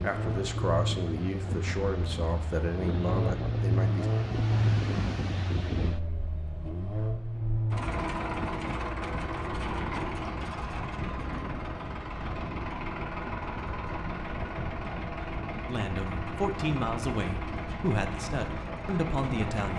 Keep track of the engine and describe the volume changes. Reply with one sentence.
The volume of the engine goes down.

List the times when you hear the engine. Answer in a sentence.
The engine can be heard from 0.0 to 19.7 s.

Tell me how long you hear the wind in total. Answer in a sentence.
The wind can be heard for 20 seconds in total.